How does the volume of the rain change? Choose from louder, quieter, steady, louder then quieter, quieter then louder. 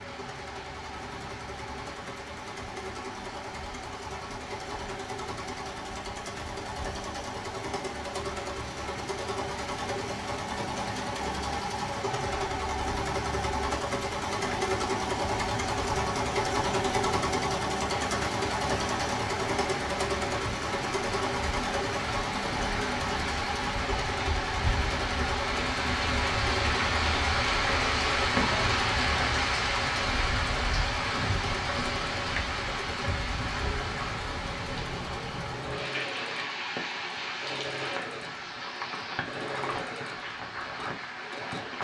louder then quieter.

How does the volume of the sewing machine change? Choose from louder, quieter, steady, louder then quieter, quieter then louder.
louder then quieter.